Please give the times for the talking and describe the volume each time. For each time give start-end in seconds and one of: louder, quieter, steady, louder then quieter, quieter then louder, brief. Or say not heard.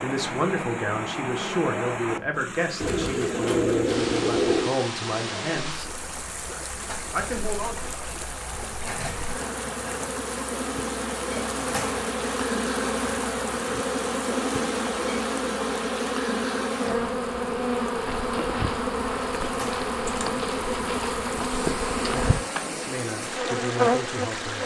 0.0-5.9 steady
7.1-7.9 brief
22.6-24.6 brief.